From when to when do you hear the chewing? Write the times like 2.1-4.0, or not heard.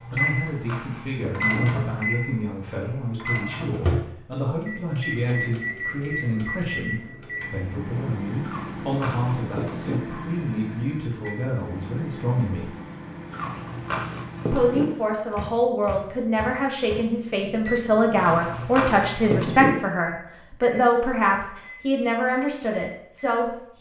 0.1-1.6, 8.4-10.0, 13.3-14.8, 18.1-19.7.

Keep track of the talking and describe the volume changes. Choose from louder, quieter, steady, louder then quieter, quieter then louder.
louder.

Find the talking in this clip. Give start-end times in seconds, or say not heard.
0.1-12.7, 14.5-23.7.